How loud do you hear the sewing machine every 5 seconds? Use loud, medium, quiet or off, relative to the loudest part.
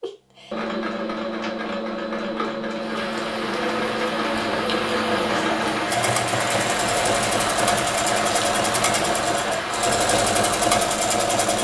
medium, loud, loud.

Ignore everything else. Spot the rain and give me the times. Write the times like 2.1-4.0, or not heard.
2.7-11.5.